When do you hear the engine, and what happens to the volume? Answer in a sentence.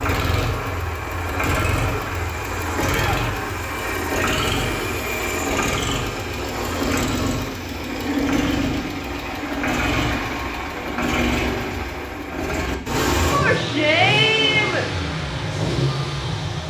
The engine can be heard from 0.0 to 16.6 s, at a steady volume.